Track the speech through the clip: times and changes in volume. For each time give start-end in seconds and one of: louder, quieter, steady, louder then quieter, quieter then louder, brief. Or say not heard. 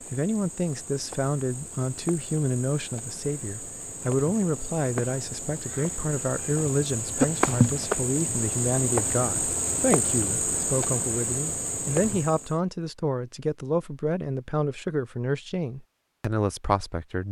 0.1-17.2 steady.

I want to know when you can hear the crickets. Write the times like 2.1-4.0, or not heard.
0.0-12.6.